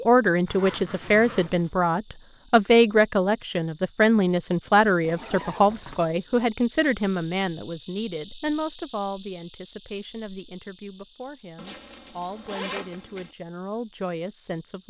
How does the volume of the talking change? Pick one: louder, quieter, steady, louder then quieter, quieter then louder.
quieter.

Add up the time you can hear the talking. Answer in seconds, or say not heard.
15 s.